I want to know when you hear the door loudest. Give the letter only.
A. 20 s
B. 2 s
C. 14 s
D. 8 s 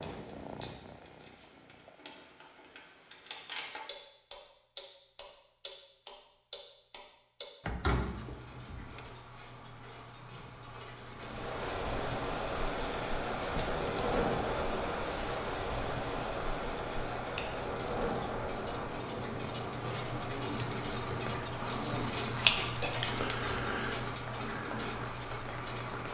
D.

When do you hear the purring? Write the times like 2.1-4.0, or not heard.
0.0-2.0.